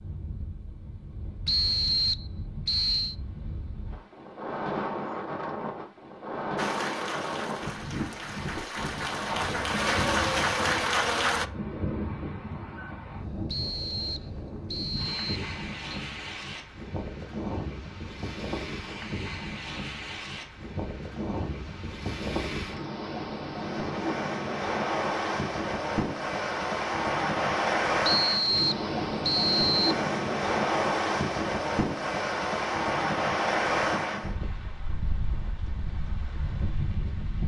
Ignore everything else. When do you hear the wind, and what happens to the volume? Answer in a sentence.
You can hear the wind from 0.0 to 37.4 s, getting louder.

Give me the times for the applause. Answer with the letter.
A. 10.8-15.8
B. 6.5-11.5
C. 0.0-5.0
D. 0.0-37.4
B.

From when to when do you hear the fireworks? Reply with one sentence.
The fireworks can't be heard in this clip.